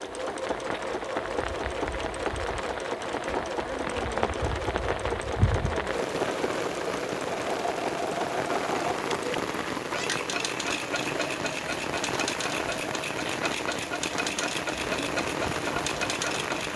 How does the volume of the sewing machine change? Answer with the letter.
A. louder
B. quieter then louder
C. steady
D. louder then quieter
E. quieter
C.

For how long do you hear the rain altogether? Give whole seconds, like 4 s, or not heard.
17 s.